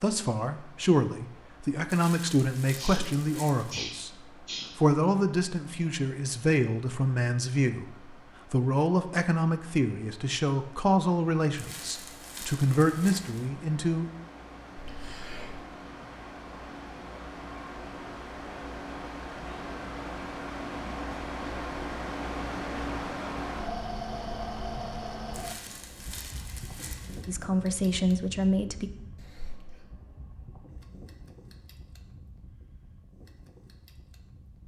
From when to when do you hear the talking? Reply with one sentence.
You can hear the talking from 0.0 to 4.2 s, from 4.8 to 14.1 s and from 27.2 to 28.9 s.